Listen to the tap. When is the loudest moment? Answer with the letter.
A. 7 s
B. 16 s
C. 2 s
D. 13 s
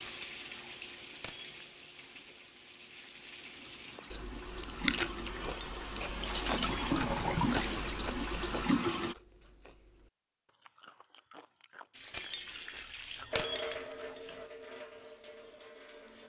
A.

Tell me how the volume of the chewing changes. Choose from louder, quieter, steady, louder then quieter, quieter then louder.
quieter.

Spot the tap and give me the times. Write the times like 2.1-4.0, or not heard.
0.0-9.2, 11.9-16.2.